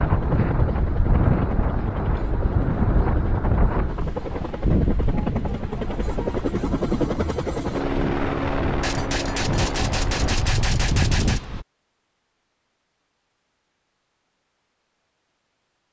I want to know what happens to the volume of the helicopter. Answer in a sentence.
The loudness of the helicopter goes up.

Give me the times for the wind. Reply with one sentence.
You can hear the wind from 0.0 to 11.7 s.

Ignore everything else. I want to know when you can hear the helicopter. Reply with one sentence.
You can hear the helicopter from 0.0 to 10.4 s.